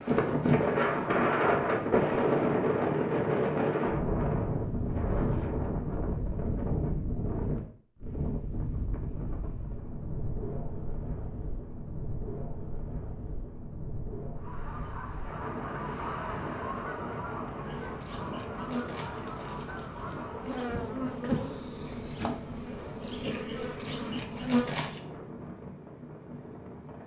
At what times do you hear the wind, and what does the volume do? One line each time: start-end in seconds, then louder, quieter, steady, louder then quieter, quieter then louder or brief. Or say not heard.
0.0-27.0 quieter.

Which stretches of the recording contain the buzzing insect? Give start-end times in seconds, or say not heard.
17.6-25.0.